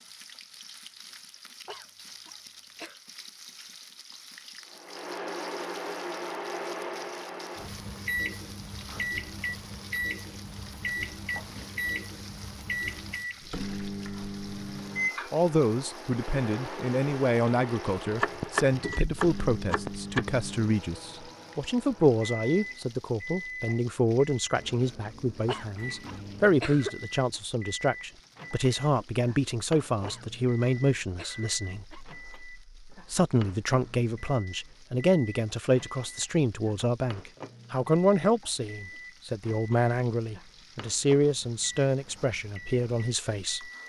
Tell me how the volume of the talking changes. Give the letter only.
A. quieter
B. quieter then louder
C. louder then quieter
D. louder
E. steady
E.